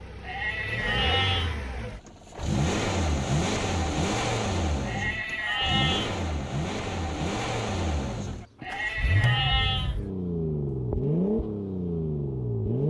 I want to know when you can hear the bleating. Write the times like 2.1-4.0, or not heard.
0.2-1.6, 4.8-6.2, 8.6-10.0.